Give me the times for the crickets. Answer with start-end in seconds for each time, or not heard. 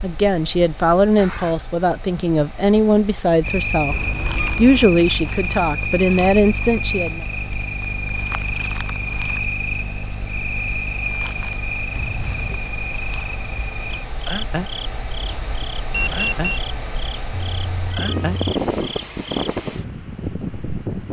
3.4-21.0.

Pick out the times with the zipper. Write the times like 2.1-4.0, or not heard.
not heard.